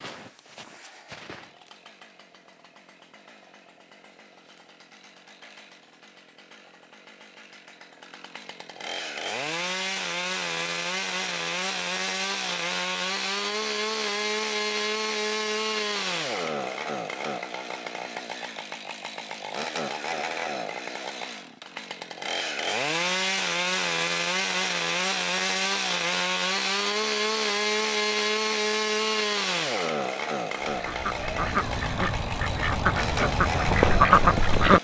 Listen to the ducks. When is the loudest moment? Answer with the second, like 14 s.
34 s.